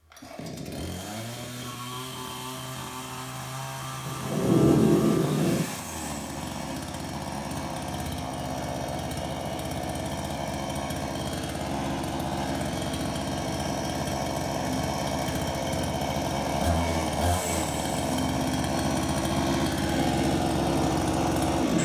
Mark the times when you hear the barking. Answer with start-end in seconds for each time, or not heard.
not heard.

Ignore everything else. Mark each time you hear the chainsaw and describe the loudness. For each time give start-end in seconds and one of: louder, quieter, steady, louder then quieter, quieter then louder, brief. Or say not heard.
0.0-21.8 louder.